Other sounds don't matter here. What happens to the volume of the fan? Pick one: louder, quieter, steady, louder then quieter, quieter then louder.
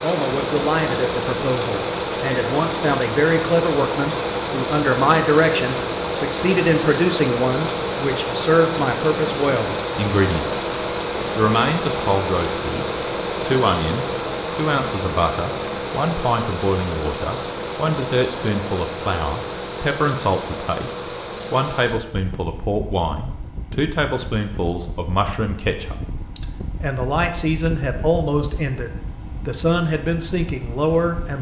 quieter.